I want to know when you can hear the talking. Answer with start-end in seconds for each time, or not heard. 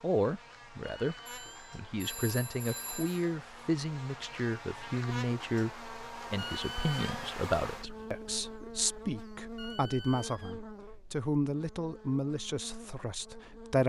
0.0-13.8.